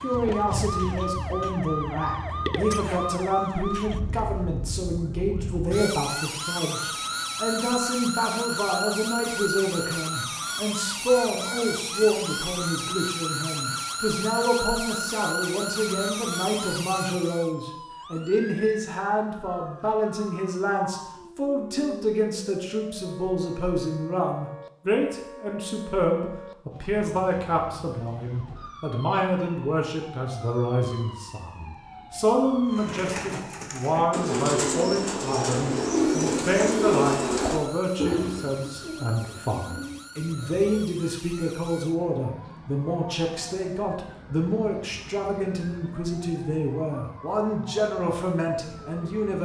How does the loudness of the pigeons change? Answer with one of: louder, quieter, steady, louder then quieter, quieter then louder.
louder then quieter.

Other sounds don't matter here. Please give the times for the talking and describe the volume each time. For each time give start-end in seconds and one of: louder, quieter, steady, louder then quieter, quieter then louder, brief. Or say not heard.
0.0-49.3 steady.